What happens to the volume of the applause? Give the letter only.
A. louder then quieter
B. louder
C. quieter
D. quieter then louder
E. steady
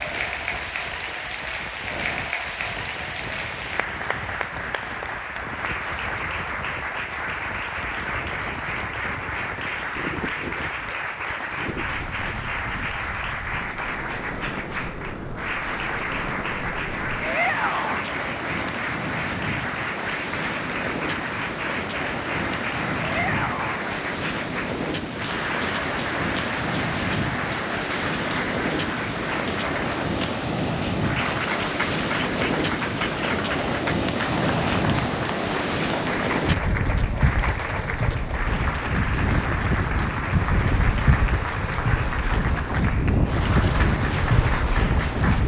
E.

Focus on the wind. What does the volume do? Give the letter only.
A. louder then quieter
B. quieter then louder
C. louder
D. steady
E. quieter
C.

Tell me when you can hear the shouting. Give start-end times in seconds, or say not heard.
17.2-18.1, 22.9-23.8.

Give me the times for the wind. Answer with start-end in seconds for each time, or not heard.
0.0-45.4.